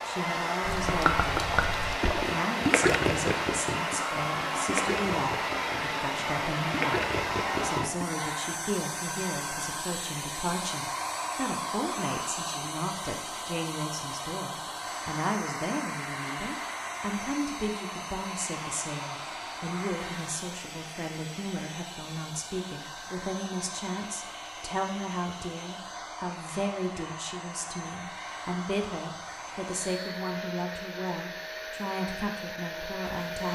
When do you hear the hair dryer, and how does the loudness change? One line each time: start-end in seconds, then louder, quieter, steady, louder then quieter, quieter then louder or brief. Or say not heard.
0.0-33.5 quieter.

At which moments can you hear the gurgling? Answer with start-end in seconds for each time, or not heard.
0.6-8.1.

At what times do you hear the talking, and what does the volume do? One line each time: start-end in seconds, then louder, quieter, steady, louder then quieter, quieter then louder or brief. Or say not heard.
0.0-1.5 brief
2.1-33.5 steady.